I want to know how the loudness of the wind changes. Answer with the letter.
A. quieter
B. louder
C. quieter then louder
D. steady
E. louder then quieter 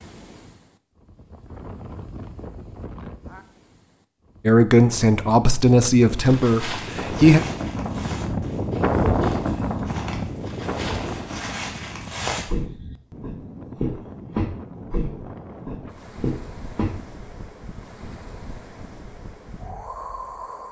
E.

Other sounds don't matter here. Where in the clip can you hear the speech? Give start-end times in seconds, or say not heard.
4.5-7.4.